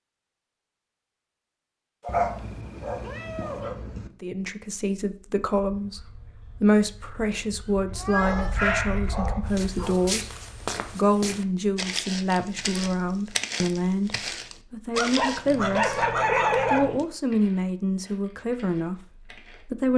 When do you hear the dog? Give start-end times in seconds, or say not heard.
2.0-3.8, 8.2-10.0, 14.9-16.9.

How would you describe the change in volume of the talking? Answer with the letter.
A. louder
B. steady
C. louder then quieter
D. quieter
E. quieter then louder
B.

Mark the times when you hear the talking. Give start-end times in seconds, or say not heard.
4.2-10.3, 10.9-16.1, 16.7-19.9.